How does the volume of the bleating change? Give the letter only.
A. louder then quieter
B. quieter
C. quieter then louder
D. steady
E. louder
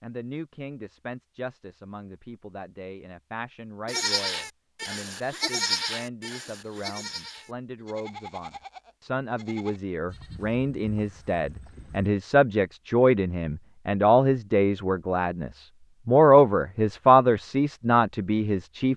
B.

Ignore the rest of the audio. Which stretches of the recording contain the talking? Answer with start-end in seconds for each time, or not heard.
0.0-18.9.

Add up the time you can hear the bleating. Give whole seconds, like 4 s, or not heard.
8 s.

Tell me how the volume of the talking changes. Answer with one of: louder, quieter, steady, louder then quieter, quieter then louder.
louder.